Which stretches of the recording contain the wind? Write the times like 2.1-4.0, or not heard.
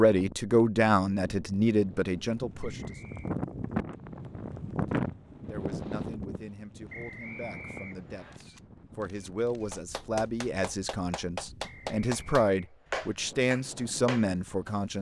0.1-14.9.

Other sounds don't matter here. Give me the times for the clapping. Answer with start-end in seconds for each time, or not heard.
9.7-14.8.